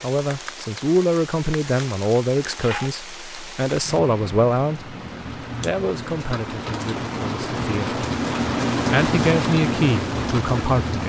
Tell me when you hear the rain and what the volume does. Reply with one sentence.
The rain can be heard from 0.0 to 11.0 s, getting louder.